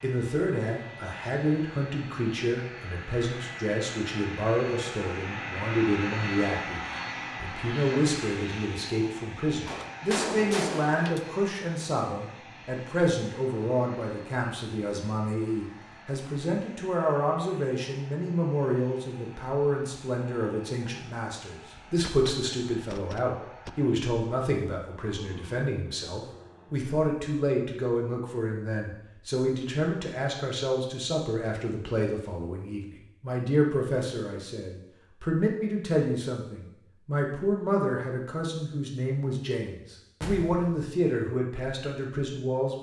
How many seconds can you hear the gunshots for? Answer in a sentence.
The gunshots can be heard for 4 seconds in total.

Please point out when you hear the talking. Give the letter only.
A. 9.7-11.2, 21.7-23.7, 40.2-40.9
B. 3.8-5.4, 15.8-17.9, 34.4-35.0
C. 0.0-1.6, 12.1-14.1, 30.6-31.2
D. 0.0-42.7
D.